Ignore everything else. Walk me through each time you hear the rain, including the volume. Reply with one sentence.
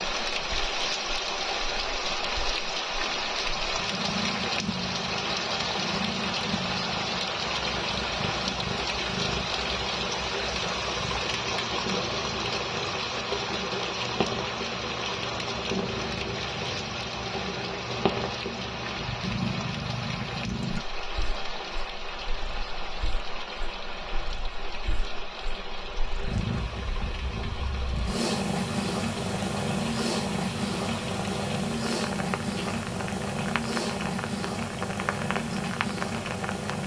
The rain can be heard from 0.0 to 36.8 s, getting quieter.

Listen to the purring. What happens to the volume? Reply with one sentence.
The loudness of the purring goes up.